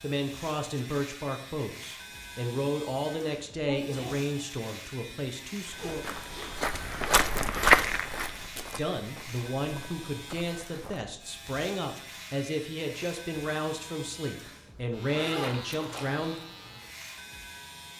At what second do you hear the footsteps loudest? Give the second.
8 s.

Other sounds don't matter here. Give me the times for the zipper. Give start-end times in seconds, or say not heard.
5.8-7.3, 15.1-16.2.